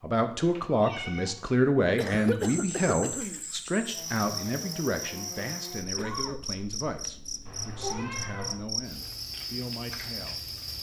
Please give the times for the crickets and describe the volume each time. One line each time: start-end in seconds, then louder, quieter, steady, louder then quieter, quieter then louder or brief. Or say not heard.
2.4-10.7 steady.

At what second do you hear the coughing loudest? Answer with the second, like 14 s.
2 s.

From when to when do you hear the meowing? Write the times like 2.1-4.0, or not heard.
0.3-1.4, 7.5-8.6.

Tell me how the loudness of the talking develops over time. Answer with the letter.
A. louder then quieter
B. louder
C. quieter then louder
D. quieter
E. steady
D.